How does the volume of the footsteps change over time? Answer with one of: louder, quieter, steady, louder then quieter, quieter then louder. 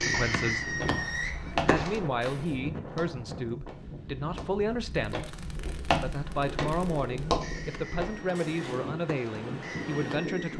quieter then louder.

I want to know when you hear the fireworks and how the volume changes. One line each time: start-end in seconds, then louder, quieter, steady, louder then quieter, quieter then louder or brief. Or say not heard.
0.0-2.5 brief
5.0-10.5 louder.